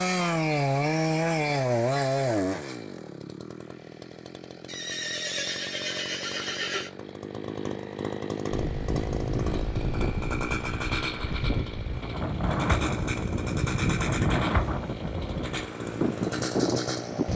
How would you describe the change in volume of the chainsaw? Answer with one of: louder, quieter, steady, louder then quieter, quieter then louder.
quieter then louder.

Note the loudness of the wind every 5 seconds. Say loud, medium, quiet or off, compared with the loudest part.
off, loud, loud, loud.